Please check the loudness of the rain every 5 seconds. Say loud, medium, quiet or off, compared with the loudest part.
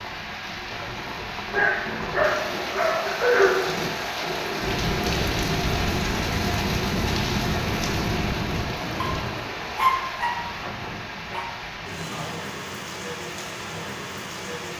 loud, loud, medium.